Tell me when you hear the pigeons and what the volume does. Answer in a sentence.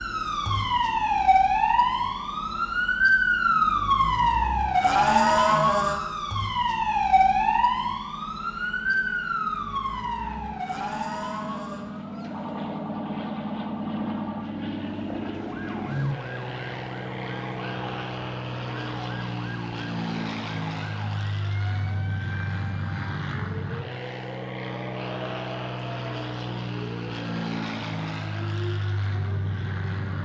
You can't hear the pigeons here.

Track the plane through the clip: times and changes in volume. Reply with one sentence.
You can hear the plane from 0.0 to 30.2 s, getting louder.